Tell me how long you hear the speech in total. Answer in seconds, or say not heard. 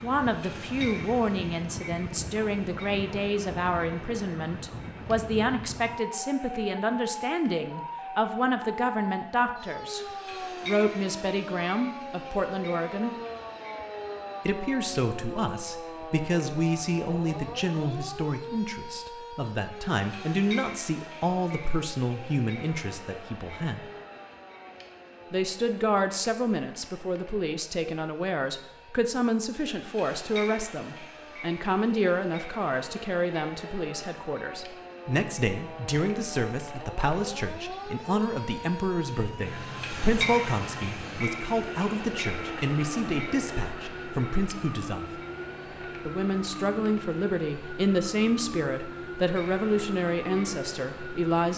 47 s.